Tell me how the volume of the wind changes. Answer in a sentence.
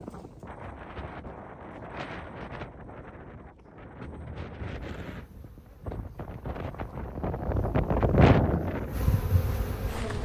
The volume of the wind goes up.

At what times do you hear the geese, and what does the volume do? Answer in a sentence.
The geese can't be heard in this clip.